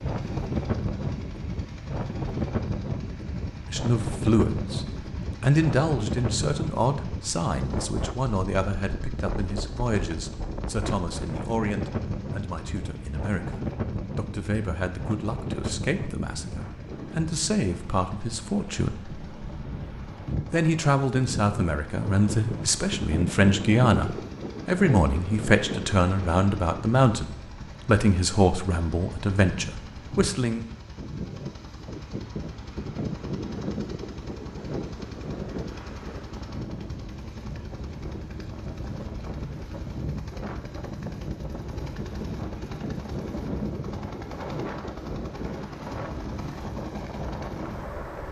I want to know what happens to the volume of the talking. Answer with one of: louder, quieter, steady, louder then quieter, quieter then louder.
quieter then louder.